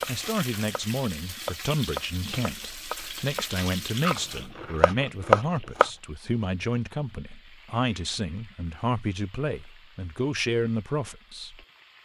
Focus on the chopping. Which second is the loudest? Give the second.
5 s.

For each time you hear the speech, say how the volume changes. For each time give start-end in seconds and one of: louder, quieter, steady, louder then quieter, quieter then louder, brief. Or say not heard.
0.1-12.0 steady.